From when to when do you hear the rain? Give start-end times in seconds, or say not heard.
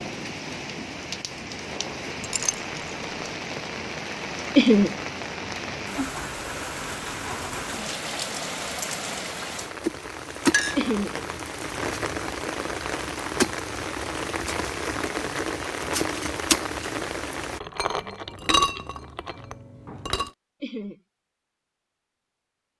0.0-17.6.